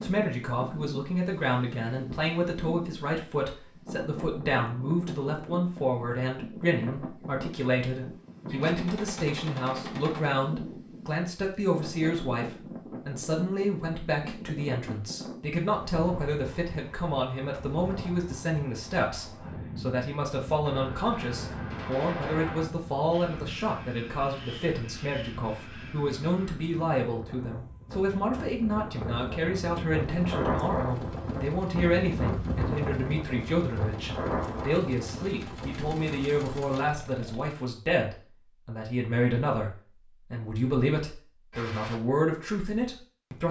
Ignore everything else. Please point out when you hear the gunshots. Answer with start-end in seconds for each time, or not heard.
8.5-10.3, 20.6-22.6, 41.5-42.0.